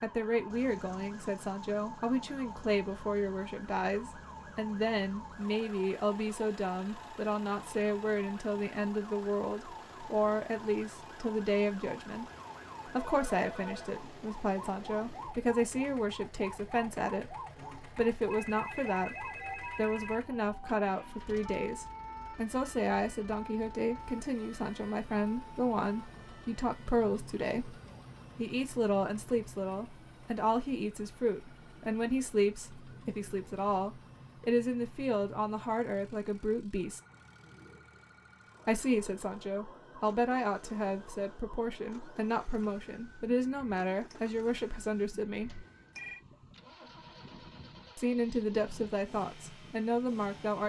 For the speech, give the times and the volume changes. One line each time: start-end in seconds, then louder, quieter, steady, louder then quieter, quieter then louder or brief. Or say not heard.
0.0-12.2 steady
12.8-27.8 steady
28.4-37.0 steady
38.6-45.6 steady
48.0-50.6 brief.